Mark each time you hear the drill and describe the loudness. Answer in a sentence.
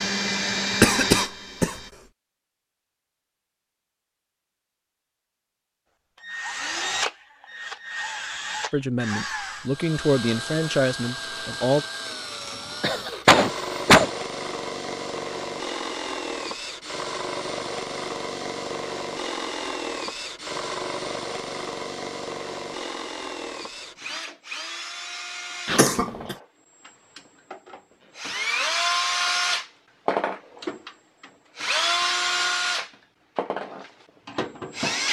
The drill can be heard briefly from 0.0 to 1.9 s; and from 6.2 to 35.0 s, getting louder.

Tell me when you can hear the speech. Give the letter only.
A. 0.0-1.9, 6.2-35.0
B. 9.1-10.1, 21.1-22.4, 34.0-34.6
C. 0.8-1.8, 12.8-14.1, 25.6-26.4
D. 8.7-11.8
D.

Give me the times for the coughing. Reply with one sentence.
You can hear the coughing from 0.8 to 1.8 s, from 12.8 to 14.1 s and from 25.6 to 26.4 s.